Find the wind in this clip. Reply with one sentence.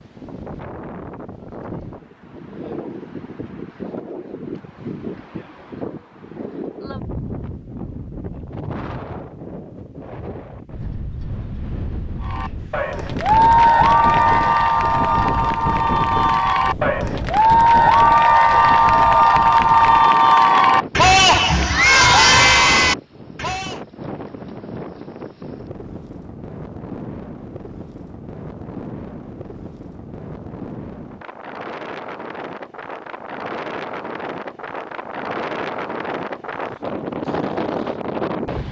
You can hear the wind from 0.0 to 38.6 s.